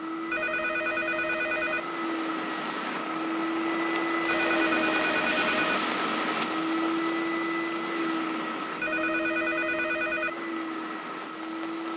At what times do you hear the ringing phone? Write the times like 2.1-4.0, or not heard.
0.3-1.8, 4.2-5.8, 8.8-10.3.